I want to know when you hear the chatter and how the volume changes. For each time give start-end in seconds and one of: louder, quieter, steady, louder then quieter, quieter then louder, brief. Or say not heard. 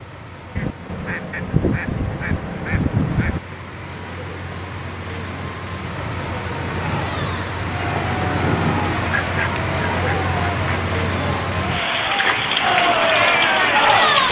6.8-14.2 louder.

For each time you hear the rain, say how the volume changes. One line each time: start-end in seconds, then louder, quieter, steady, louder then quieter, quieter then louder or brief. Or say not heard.
0.0-14.2 louder.